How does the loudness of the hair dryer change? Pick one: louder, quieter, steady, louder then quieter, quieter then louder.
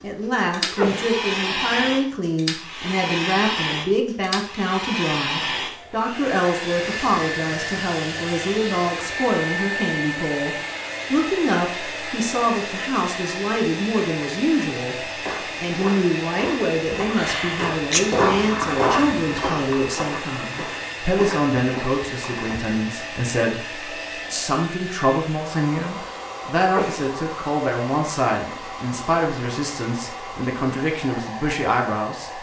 quieter.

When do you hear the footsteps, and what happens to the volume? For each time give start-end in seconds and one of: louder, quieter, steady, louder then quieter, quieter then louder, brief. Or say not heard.
15.0-22.6 louder then quieter.